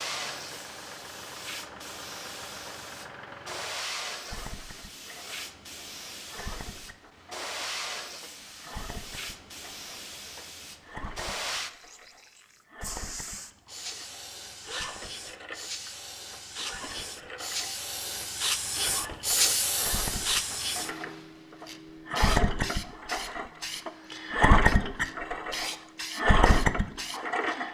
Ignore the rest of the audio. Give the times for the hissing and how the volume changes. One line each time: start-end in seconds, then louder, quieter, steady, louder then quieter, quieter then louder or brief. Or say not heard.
0.0-27.6 louder then quieter.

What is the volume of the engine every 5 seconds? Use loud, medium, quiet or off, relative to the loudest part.
quiet, quiet, quiet, quiet, loud, loud.